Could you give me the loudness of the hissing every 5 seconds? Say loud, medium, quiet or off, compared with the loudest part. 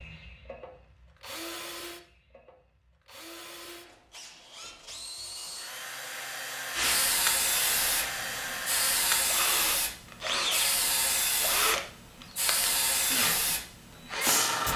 off, loud, loud.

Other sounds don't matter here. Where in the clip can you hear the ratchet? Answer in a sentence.
The ratchet can't be heard in this clip.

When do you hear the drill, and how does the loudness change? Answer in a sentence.
You can hear the drill from 0.0 to 14.7 s, getting louder.